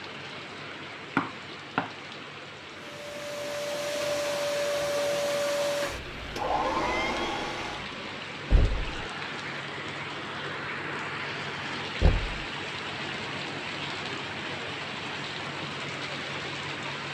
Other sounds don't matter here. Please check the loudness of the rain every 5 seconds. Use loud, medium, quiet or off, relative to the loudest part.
medium, loud, loud, loud.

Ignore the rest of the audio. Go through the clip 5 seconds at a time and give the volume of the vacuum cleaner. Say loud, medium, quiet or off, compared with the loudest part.
loud, loud, off, off.